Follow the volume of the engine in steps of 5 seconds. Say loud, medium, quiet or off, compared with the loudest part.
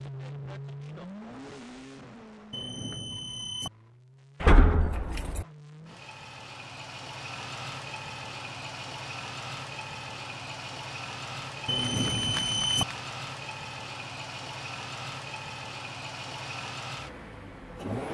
medium, loud, loud, loud.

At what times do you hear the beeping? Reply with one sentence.
You can hear the beeping from 2.5 to 3.7 s and from 11.7 to 12.8 s.